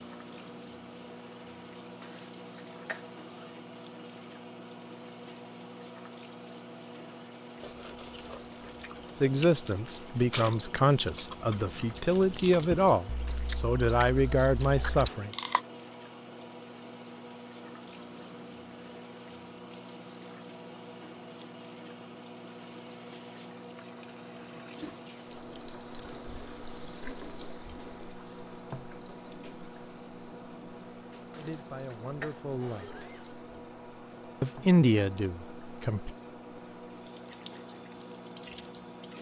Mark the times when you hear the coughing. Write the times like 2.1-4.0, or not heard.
2.0-3.5, 31.3-33.4.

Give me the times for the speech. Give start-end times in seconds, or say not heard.
9.2-15.3, 31.4-33.0, 34.4-36.1.